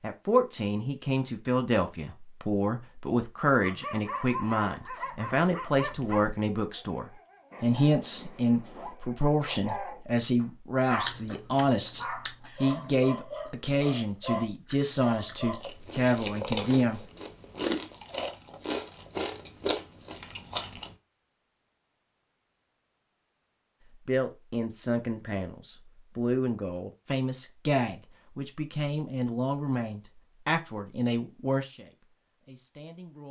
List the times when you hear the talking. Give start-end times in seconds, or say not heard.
0.0-17.0, 24.1-33.2.